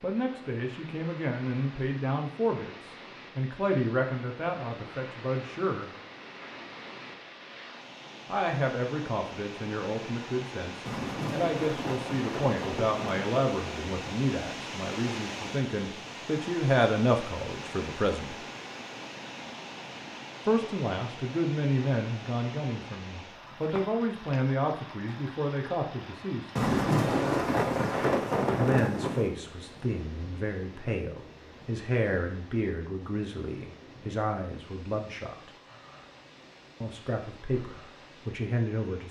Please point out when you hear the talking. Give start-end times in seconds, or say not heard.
0.0-5.9, 8.2-18.4, 20.4-26.6, 28.6-35.5, 36.8-39.0.